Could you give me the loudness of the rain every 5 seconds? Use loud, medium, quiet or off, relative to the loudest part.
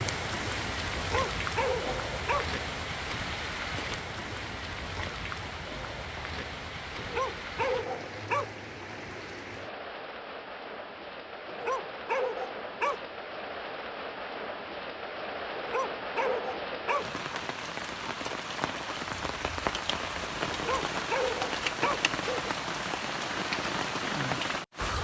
loud, medium, medium, loud, loud.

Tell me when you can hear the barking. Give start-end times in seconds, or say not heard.
0.9-2.5, 7.0-8.4, 11.4-13.2, 15.6-17.2, 20.5-22.5.